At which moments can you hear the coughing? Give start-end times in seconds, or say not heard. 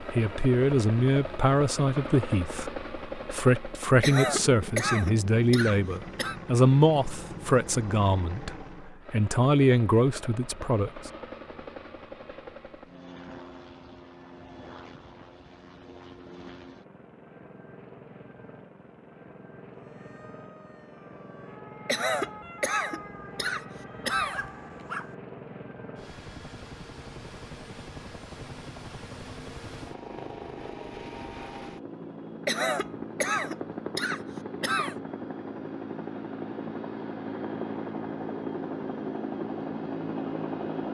4.0-6.4, 21.9-24.5, 32.5-35.0.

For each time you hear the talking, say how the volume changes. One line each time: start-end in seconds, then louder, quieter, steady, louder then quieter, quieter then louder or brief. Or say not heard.
0.1-10.9 steady.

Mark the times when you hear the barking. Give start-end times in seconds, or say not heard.
24.3-25.1.